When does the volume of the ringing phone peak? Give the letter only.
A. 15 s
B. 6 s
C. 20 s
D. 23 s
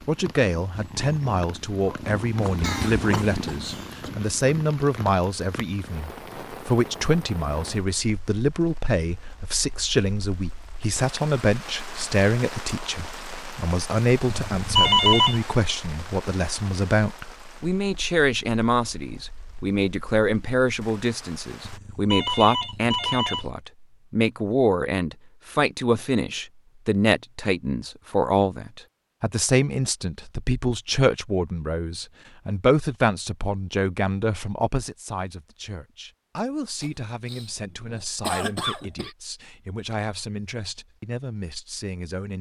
A.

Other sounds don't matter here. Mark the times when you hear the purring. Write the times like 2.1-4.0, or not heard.
0.0-4.7.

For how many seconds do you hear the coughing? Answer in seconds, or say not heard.
4 s.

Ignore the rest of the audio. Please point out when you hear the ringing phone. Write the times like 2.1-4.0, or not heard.
14.3-15.4, 21.6-23.5.